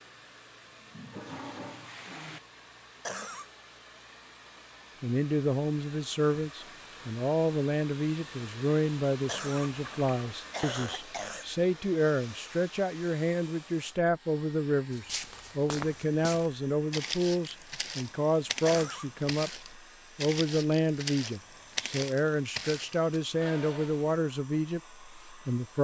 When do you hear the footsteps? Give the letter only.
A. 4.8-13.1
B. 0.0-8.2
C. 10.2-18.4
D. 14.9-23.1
D.